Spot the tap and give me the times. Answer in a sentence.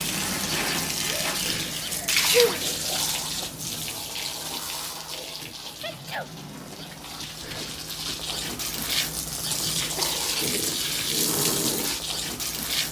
The tap can be heard from 0.0 to 12.8 s.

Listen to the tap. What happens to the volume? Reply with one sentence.
The loudness of the tap goes down, then up.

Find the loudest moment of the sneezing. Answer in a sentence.
The loudest moment of the sneezing is at 2 seconds.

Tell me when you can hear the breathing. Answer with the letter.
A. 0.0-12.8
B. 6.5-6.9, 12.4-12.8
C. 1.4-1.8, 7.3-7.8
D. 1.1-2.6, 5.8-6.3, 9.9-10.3
C.